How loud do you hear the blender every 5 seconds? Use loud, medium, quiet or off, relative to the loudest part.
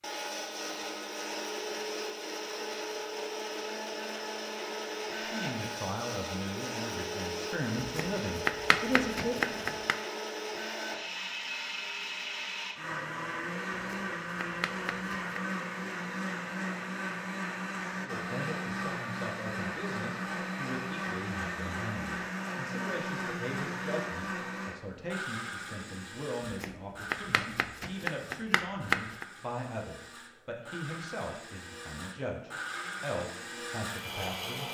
loud, loud, loud, loud, loud, medium, medium.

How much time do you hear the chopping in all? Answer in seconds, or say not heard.
7 s.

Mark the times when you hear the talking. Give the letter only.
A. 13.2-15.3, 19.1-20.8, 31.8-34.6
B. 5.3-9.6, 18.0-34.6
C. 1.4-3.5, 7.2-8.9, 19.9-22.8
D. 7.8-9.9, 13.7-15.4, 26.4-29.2
B.